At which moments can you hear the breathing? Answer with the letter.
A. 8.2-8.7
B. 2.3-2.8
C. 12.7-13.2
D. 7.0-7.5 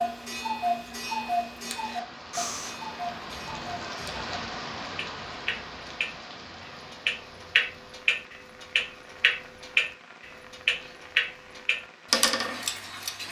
B.